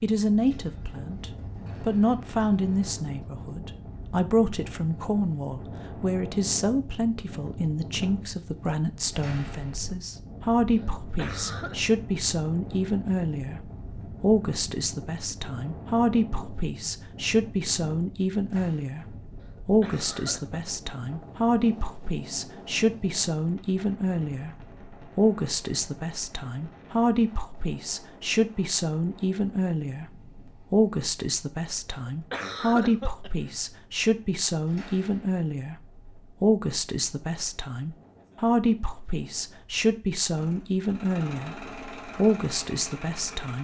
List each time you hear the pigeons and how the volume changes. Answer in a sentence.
The pigeons can't be heard in this clip.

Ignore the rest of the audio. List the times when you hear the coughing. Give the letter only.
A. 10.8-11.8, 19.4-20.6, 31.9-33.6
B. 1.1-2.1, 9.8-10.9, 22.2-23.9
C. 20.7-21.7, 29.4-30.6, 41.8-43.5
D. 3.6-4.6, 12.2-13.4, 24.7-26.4
A.